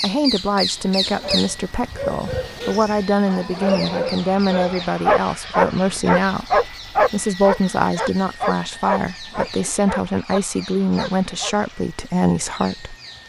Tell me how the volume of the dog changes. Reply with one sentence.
The loudness of the dog goes up, then down.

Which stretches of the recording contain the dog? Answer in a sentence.
You can hear the dog from 0.8 to 11.6 s.